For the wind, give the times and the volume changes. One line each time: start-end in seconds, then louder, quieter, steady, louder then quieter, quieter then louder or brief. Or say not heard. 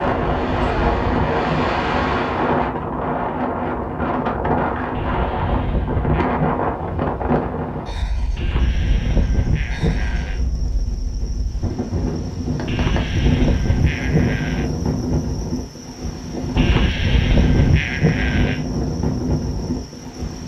0.0-20.4 quieter then louder.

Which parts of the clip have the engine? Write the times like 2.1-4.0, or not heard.
0.0-2.6.